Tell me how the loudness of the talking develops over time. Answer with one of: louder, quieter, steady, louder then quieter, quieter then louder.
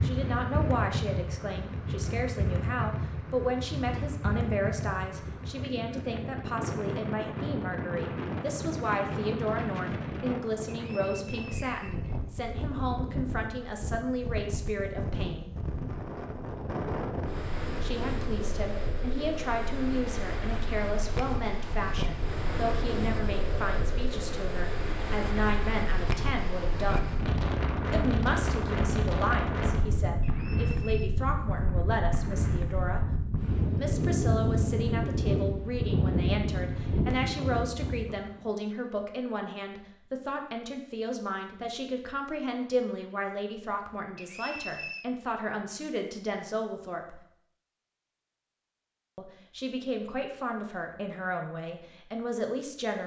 steady.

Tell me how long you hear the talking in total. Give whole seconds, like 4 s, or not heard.
47 s.